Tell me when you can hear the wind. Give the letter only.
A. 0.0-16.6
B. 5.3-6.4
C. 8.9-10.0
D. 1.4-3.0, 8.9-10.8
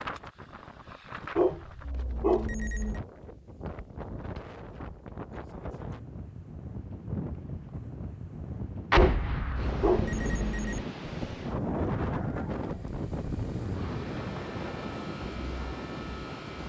A.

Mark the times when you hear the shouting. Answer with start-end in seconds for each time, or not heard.
not heard.